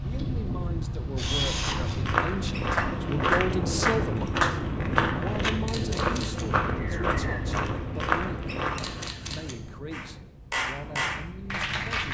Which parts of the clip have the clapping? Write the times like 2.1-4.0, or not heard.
2.8-4.6, 9.9-12.0.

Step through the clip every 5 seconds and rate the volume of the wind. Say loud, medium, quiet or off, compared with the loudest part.
loud, loud, medium.